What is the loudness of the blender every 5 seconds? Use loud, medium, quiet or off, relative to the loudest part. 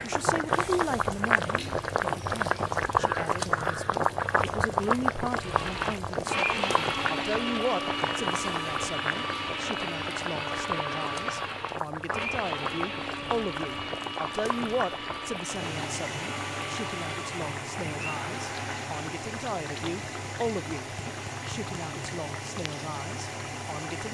off, loud, loud, medium, off.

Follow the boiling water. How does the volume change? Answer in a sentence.
The loudness of the boiling water goes down.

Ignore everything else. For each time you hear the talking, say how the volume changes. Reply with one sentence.
You can hear the talking from 0.0 to 24.0 s, at a steady volume.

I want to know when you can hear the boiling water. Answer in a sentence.
You can hear the boiling water from 0.0 to 24.0 s.